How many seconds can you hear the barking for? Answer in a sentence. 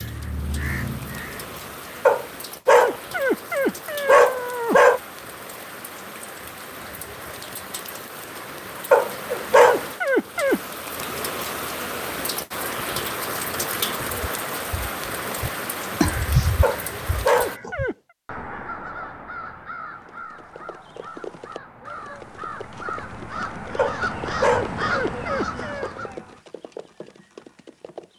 You can hear the barking for 8 seconds altogether.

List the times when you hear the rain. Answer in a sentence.
You can hear the rain from 0.0 to 17.6 s.